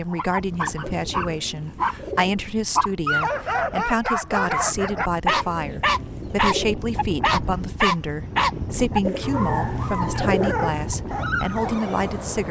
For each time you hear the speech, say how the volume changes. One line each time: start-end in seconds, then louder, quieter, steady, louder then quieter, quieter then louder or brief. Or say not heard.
0.0-12.4 steady.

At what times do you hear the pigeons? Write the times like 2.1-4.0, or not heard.
1.1-2.4, 5.2-6.8, 9.1-10.6.